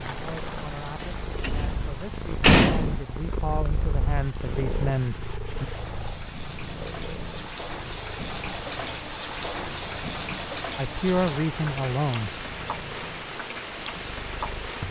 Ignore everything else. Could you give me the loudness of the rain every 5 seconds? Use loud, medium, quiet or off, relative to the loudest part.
medium, loud, loud.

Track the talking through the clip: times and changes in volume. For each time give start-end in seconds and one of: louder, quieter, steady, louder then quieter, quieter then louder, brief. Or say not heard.
0.1-5.7 louder
10.8-12.3 brief.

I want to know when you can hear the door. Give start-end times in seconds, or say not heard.
1.4-3.0.